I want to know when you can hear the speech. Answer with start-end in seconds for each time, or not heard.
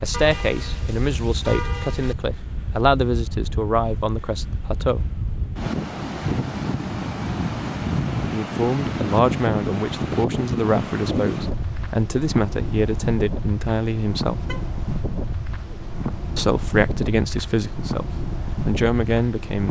0.0-5.0, 8.3-14.4, 16.4-19.6.